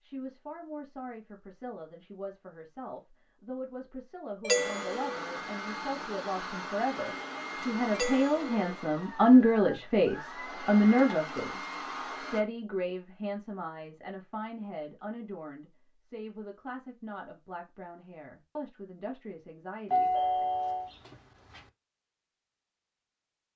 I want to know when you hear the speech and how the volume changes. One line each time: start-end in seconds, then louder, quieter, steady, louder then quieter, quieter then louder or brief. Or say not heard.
0.0-20.4 louder then quieter.